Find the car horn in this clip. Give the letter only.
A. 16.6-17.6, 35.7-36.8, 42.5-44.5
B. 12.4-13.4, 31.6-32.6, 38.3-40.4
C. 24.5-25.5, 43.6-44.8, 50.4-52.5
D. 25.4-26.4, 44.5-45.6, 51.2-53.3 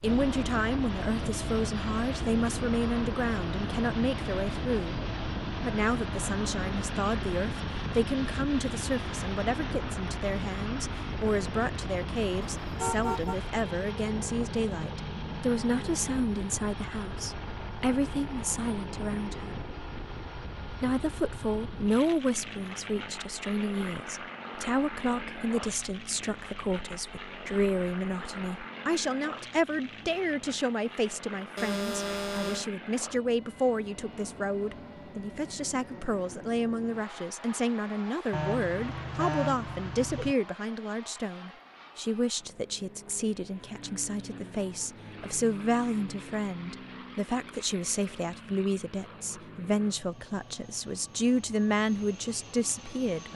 B.